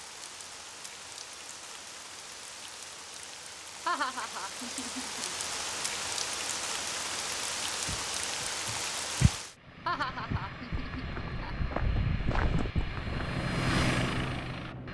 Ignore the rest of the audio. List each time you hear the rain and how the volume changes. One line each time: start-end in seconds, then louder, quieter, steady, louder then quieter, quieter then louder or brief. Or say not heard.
0.0-9.6 louder.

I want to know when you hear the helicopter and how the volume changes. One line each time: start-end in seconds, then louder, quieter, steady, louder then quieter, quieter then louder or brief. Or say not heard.
9.5-14.8 louder.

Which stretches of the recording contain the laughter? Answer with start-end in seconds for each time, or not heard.
3.9-5.3, 9.8-11.6.